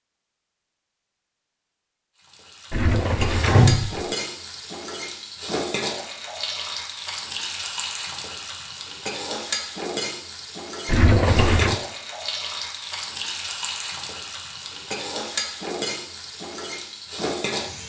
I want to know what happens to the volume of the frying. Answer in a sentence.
The volume of the frying stays about the same.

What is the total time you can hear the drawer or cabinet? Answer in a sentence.
The drawer or cabinet can be heard for 2 seconds in total.